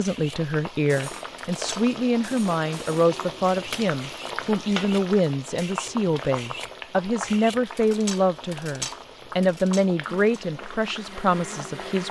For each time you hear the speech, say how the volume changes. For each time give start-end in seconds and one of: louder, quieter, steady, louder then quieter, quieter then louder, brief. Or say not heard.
0.0-12.0 steady.